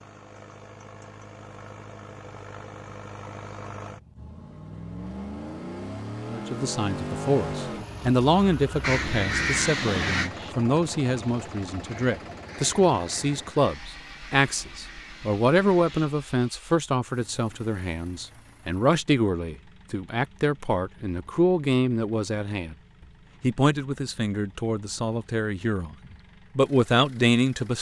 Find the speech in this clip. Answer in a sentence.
You can hear the speech from 6.3 to 22.8 s and from 23.4 to 27.7 s.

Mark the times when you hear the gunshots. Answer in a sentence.
You can't hear the gunshots here.